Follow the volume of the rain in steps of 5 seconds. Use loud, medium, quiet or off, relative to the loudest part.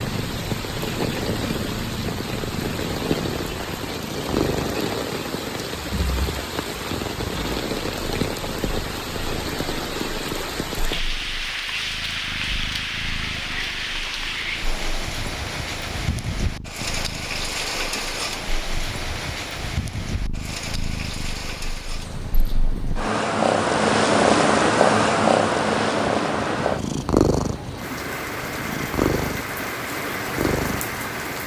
loud, loud, loud, loud, medium, loud, loud.